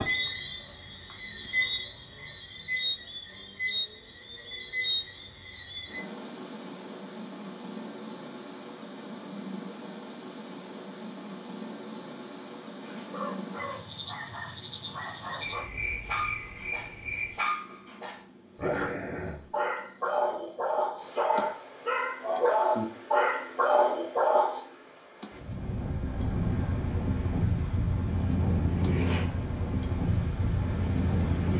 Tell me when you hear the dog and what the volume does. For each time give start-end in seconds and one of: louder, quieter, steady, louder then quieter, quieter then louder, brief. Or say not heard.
12.8-24.6 louder.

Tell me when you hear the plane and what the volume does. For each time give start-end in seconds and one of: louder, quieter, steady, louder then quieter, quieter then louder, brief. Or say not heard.
25.3-31.5 steady.